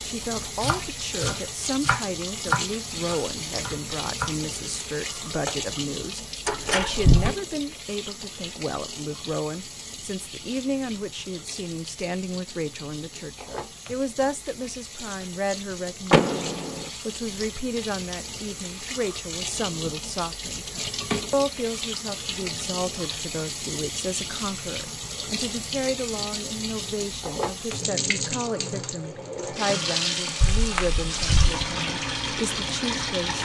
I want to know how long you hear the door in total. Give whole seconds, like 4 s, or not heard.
3 s.